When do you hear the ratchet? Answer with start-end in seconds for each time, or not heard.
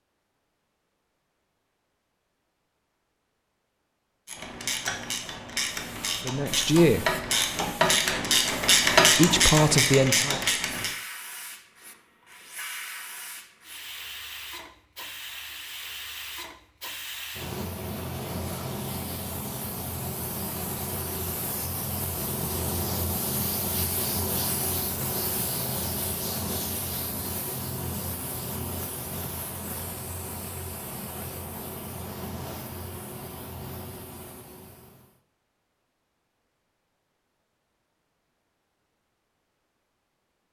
4.2-10.9.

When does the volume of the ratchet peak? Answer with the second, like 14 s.
9 s.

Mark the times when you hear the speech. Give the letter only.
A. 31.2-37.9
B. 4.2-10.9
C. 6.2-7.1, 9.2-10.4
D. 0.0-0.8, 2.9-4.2
C.